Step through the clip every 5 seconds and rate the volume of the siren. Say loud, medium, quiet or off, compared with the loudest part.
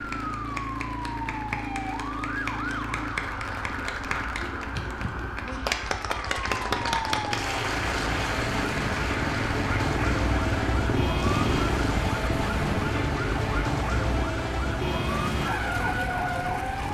medium, medium, loud, loud.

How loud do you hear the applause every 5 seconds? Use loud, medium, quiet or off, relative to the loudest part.
medium, loud, medium, medium.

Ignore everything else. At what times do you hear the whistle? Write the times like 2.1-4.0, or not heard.
not heard.